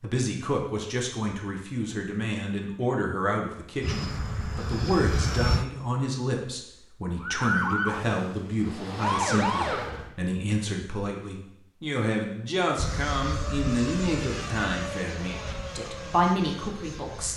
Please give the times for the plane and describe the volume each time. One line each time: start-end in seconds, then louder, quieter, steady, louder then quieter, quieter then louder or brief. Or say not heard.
3.8-5.7 brief
12.8-17.3 quieter.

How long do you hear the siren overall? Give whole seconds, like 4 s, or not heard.
3 s.